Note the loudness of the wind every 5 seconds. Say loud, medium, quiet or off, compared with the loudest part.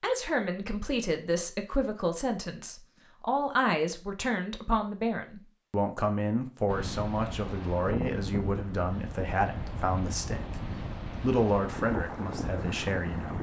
off, loud, loud.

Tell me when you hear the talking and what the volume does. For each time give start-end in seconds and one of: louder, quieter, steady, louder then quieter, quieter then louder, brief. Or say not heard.
0.0-10.6 steady
11.2-13.3 brief.